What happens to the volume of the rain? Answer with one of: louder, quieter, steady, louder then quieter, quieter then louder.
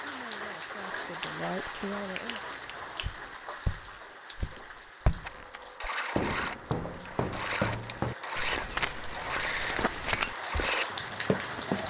quieter then louder.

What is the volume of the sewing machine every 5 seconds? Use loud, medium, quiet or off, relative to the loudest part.
off, loud, loud.